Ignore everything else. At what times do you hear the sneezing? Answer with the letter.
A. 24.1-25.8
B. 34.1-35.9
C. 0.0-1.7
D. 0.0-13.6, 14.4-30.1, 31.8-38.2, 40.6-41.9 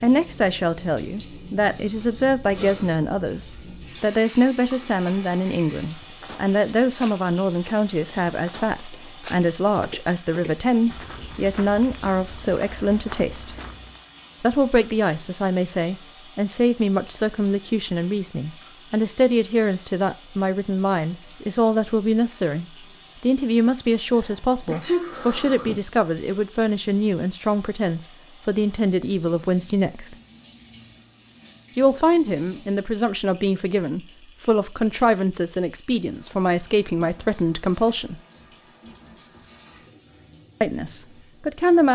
A.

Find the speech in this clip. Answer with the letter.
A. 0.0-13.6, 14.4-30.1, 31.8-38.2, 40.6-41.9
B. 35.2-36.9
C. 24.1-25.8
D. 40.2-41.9
A.